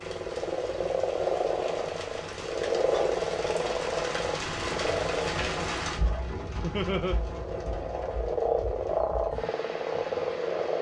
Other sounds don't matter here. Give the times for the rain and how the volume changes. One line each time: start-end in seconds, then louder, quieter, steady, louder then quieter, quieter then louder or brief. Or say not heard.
0.0-10.7 louder then quieter.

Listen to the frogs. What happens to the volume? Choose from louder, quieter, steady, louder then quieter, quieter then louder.
quieter then louder.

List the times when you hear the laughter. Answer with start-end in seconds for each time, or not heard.
6.6-7.2.